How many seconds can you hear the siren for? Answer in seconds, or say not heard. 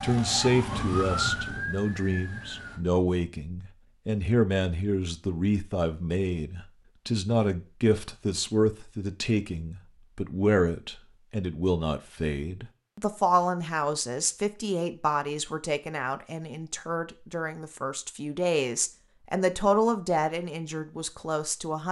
3 s.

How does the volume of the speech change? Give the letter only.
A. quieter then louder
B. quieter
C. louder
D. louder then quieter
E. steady
E.